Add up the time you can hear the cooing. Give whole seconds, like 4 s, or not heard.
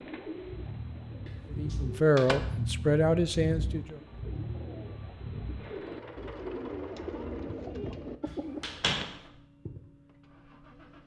9 s.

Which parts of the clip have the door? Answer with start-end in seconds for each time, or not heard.
1.2-2.4, 8.2-9.2.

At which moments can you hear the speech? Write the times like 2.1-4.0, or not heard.
1.5-4.0.